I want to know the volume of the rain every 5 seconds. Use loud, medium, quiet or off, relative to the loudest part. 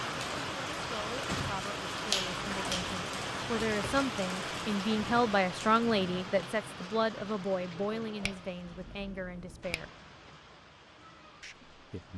loud, medium, quiet.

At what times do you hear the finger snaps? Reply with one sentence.
The finger snaps can be heard from 2.0 to 3.0 s and from 8.2 to 9.9 s.